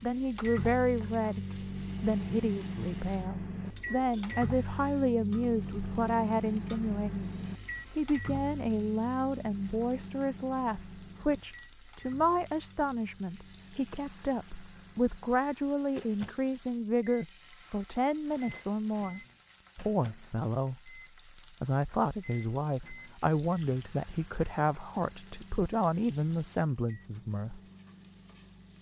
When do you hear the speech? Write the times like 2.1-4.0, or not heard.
0.0-7.3, 7.9-21.0, 21.6-27.6.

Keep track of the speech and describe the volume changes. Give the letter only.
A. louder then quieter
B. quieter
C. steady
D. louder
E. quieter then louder
C.